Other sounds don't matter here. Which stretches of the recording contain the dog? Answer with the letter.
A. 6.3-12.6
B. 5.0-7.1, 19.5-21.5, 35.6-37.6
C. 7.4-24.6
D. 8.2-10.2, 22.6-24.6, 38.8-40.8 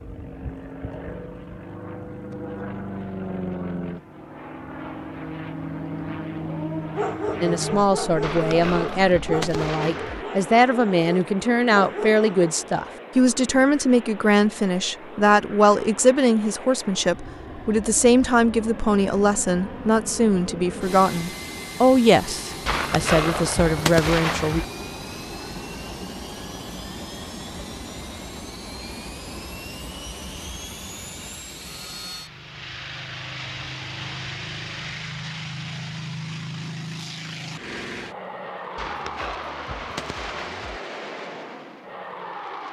A.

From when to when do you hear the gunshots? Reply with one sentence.
The gunshots can be heard from 8.2 to 10.2 s, from 22.6 to 24.6 s and from 38.8 to 40.8 s.